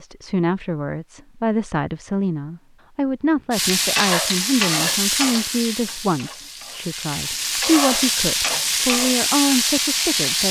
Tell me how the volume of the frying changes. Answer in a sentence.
The loudness of the frying goes down, then up.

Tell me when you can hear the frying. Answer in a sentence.
You can hear the frying from 3.5 to 10.4 s.